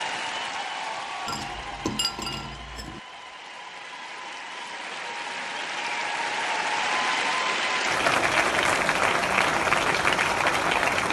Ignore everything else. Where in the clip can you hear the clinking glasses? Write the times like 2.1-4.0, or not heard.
1.2-3.0.